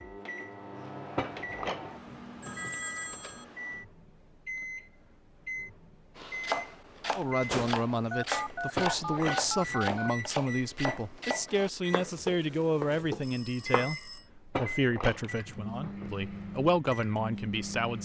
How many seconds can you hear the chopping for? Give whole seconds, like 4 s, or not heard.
8 s.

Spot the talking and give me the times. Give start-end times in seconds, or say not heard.
7.2-17.9.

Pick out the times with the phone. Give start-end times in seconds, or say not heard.
2.4-3.5, 8.1-10.1, 13.2-14.2.